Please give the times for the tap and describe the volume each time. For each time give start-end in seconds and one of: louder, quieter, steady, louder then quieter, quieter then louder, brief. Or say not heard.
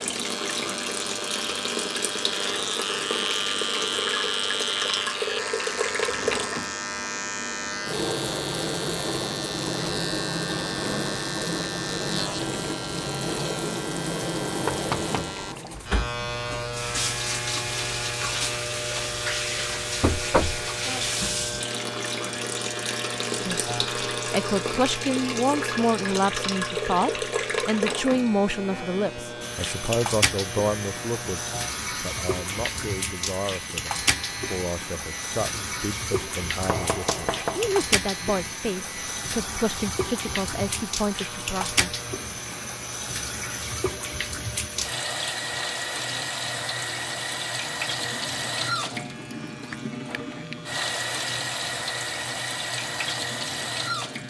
0.0-54.2 steady.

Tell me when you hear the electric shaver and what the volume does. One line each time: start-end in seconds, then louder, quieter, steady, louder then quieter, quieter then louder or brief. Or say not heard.
0.1-54.2 quieter.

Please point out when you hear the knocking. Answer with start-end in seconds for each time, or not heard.
14.7-15.4, 20.0-20.6, 36.6-37.9.